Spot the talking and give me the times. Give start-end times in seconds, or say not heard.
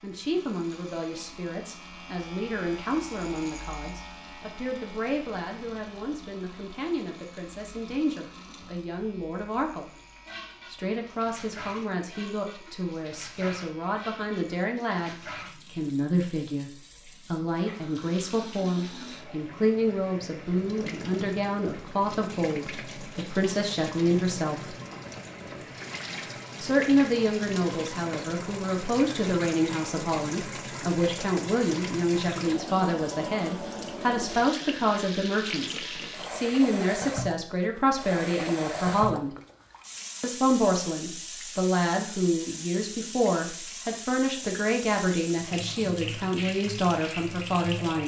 0.0-9.9, 10.7-24.8, 26.6-39.4, 40.2-48.0.